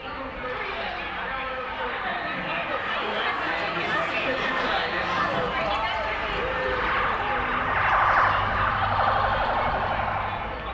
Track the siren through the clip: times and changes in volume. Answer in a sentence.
The siren can be heard from 0.0 to 10.6 s, getting louder.